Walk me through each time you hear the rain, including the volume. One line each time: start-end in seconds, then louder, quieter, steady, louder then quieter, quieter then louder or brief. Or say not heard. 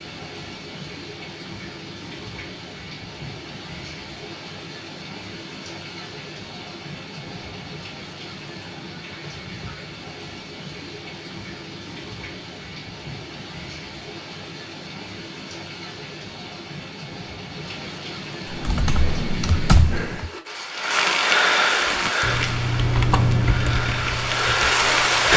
0.0-25.3 louder.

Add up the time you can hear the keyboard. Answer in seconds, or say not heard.
5 s.